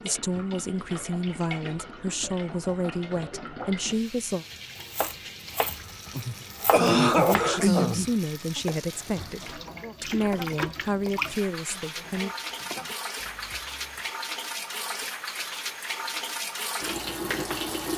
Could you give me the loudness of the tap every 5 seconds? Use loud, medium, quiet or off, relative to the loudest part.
medium, medium, loud, loud.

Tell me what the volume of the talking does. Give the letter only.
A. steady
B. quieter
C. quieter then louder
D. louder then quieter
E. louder
A.